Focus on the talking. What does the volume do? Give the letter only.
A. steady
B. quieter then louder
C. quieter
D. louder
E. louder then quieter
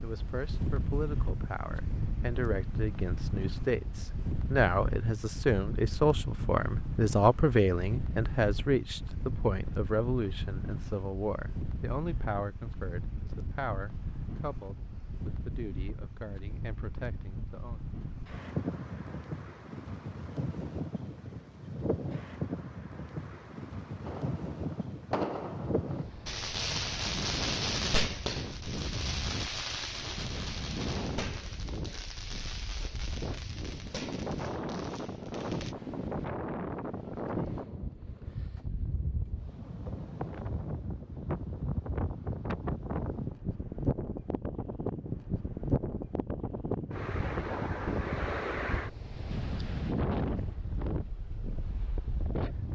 E.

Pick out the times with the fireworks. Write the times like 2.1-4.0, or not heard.
24.0-35.8.